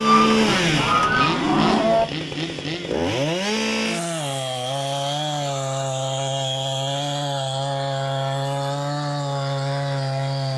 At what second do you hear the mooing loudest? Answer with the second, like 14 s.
2 s.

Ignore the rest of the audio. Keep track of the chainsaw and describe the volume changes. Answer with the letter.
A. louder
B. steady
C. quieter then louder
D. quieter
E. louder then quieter
B.